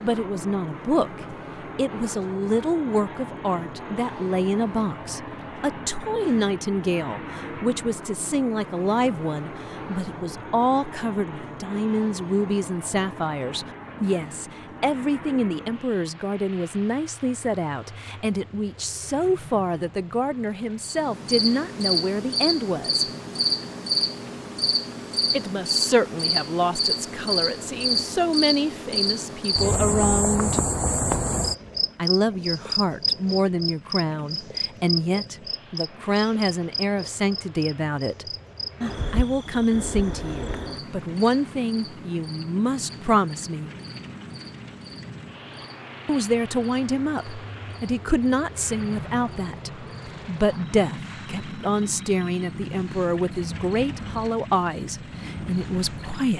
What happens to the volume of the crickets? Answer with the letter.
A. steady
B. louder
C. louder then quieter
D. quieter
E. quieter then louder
D.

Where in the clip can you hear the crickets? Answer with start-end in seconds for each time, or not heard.
20.8-56.2.